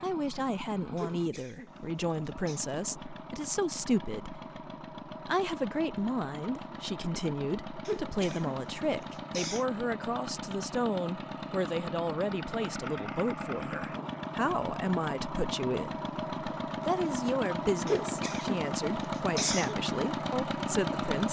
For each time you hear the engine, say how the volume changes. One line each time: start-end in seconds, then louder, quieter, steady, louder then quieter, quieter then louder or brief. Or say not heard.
0.0-21.2 louder.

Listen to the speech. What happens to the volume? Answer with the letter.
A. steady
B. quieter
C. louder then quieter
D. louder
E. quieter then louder
A.